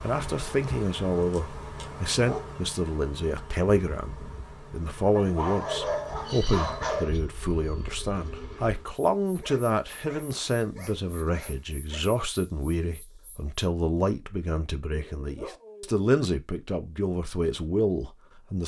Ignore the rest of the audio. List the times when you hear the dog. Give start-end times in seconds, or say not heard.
1.1-2.5, 5.1-7.2, 9.4-12.1, 14.8-16.1.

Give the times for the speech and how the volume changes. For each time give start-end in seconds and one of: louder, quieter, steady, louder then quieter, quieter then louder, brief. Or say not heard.
0.0-18.6 steady.